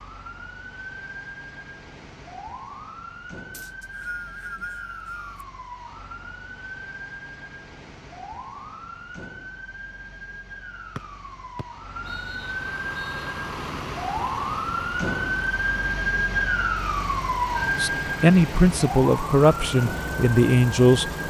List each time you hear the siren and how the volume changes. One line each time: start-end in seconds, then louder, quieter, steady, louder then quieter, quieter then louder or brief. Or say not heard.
0.0-21.2 louder.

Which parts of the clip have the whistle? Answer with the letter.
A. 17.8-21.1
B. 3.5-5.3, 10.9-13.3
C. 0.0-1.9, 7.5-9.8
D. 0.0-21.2
B.